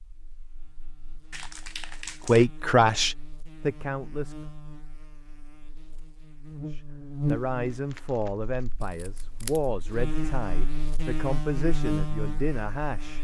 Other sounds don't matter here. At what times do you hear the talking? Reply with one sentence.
The talking can be heard from 2.2 to 4.3 s and from 6.7 to 13.1 s.